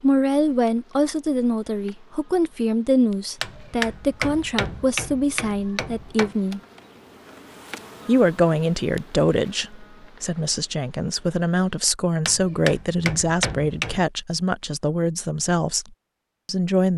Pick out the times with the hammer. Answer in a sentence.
You can hear the hammer from 3.4 to 6.3 s and from 12.2 to 14.1 s.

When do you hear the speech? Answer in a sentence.
The speech can be heard from 0.0 to 6.6 s, from 8.1 to 15.8 s and from 16.4 to 16.9 s.